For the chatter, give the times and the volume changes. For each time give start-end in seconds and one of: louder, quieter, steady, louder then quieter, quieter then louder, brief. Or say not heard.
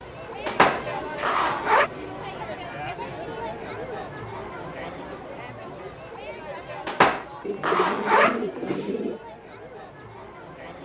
0.0-10.8 quieter.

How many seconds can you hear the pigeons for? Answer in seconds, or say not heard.
4 s.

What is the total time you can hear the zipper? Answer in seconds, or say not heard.
3 s.